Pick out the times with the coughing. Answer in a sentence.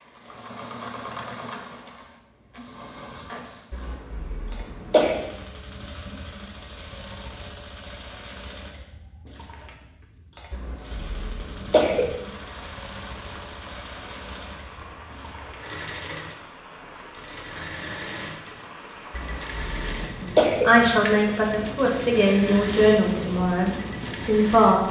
You can hear the coughing from 3.7 to 5.2 s, from 10.5 to 12.2 s and from 19.1 to 20.8 s.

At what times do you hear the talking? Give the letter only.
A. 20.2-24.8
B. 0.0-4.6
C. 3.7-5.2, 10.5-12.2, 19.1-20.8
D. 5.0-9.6
A.